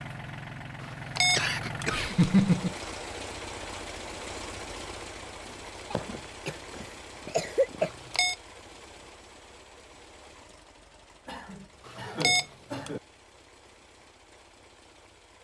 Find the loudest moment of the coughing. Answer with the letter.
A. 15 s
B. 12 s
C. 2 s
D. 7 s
C.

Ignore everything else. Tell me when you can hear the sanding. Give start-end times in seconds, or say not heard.
not heard.